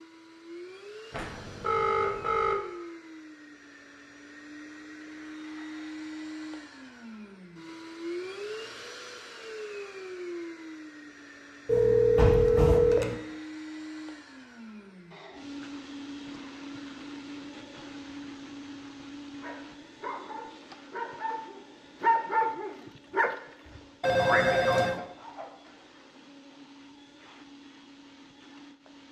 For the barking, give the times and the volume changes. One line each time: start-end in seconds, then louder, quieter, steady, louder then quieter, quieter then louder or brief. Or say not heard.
19.4-25.5 louder then quieter.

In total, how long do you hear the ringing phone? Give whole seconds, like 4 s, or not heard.
4 s.